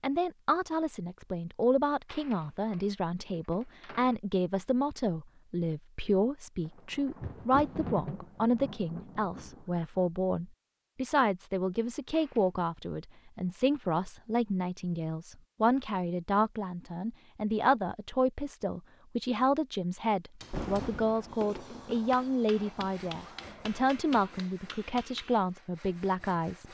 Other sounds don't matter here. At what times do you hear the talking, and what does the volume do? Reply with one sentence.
The talking can be heard from 0.0 to 26.6 s, at a steady volume.